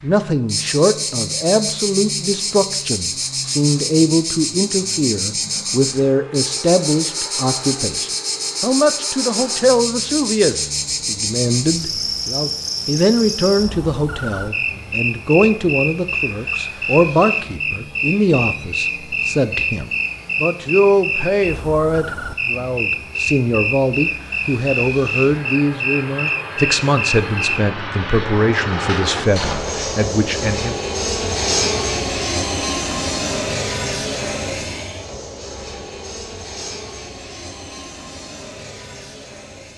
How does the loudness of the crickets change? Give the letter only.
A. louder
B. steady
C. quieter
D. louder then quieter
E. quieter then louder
B.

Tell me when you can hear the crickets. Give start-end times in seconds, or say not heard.
0.0-27.6.